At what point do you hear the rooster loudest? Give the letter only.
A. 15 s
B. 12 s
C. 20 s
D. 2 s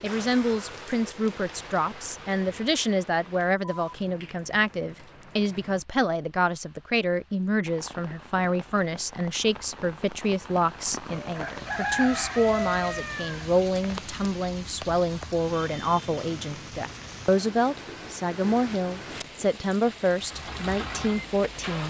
B.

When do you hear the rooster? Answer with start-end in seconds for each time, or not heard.
11.2-14.2.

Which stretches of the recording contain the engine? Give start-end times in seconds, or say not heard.
20.1-21.8.